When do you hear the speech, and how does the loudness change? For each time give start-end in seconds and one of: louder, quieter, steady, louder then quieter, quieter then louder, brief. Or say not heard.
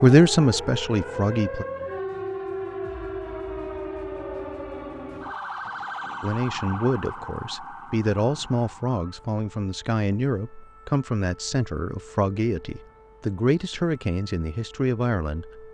0.0-1.6 brief
6.2-15.6 steady.